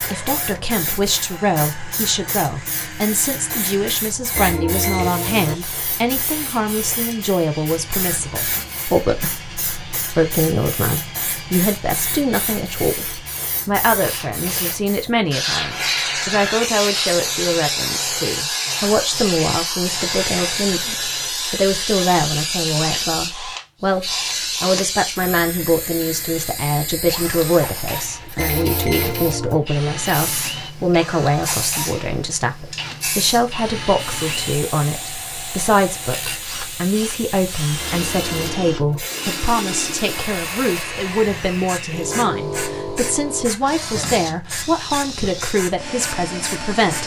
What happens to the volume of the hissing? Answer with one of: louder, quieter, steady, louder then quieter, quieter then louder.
louder then quieter.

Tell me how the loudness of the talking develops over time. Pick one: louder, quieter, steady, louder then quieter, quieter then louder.
steady.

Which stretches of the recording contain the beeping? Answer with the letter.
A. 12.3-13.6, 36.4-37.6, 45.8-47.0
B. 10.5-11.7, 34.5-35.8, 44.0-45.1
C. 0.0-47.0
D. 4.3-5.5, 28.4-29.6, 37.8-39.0
D.